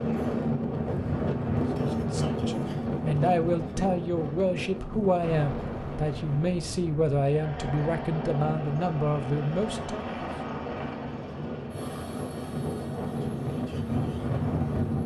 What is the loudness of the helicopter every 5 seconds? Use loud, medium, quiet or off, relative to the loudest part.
off, loud, medium.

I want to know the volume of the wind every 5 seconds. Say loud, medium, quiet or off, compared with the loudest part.
loud, medium, loud.